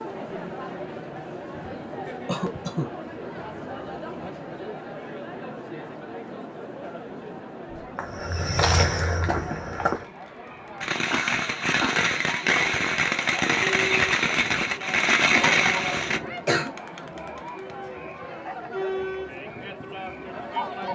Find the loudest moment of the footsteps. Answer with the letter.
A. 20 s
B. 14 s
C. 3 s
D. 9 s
D.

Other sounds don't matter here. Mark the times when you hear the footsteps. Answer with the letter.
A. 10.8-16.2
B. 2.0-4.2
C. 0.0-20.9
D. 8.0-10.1
D.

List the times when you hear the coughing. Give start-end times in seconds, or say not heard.
2.2-2.9, 11.1-12.1, 15.3-16.7.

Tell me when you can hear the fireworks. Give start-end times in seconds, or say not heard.
10.8-16.2.